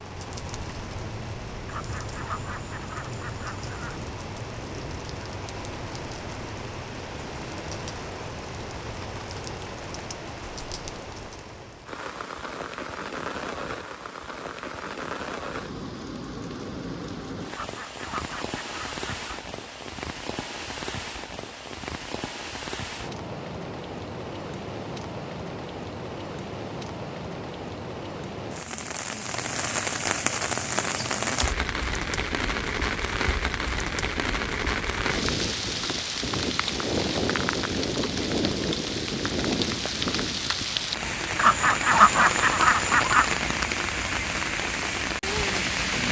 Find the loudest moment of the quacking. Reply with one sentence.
The loudest moment of the quacking is at 42 seconds.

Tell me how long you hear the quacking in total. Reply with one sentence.
You can hear the quacking for 6 seconds altogether.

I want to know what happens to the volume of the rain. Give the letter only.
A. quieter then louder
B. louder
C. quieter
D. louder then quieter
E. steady
B.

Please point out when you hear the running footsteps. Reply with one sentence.
The running footsteps can't be heard in this clip.